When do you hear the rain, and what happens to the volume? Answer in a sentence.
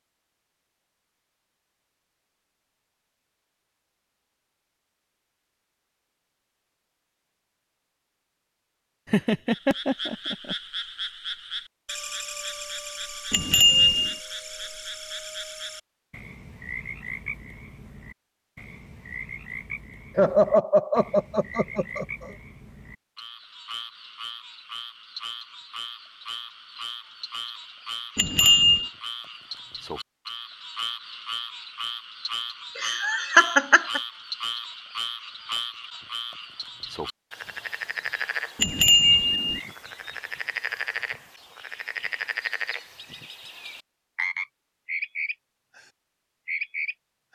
The rain can't be heard in this clip.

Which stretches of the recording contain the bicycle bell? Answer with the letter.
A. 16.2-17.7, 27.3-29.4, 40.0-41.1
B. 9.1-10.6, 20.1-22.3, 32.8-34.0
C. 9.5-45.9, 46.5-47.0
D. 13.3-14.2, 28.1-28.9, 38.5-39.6
D.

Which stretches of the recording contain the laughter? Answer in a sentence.
You can hear the laughter from 9.1 to 10.6 s, from 20.1 to 22.3 s and from 32.8 to 34.0 s.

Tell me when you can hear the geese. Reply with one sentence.
You can't hear the geese here.